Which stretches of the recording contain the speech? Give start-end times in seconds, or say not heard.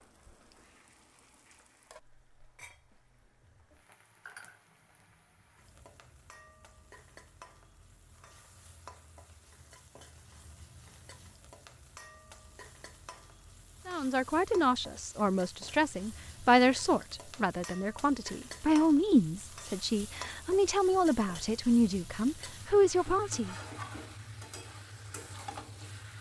13.8-23.6.